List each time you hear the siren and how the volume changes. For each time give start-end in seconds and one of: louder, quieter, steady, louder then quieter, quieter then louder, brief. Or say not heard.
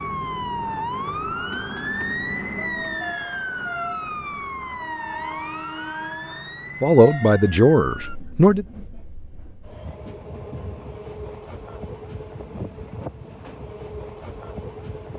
0.0-8.2 quieter.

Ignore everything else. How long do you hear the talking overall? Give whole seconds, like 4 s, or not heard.
2 s.